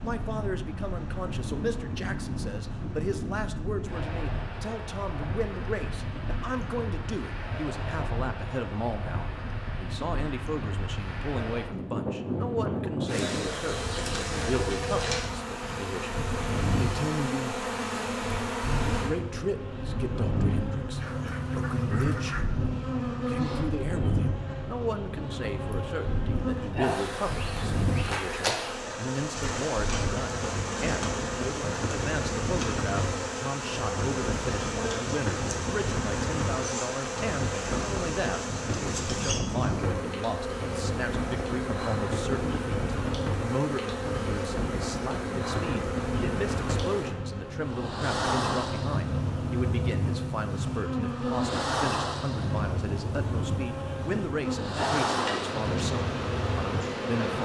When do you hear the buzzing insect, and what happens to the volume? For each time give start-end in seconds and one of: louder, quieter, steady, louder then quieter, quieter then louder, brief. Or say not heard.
13.1-57.4 steady.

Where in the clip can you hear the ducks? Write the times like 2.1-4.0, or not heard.
20.9-22.5.